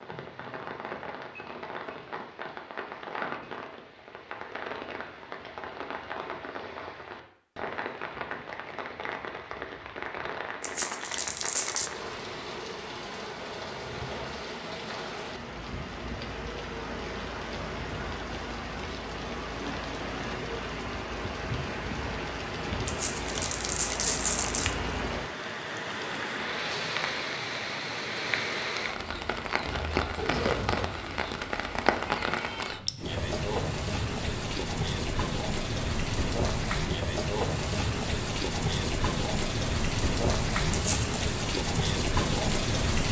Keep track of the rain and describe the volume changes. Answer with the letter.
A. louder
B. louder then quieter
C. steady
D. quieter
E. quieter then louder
A.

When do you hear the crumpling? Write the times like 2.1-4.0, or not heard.
10.6-11.9, 22.9-24.8, 40.7-41.2.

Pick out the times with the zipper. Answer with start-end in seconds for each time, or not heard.
29.6-31.1.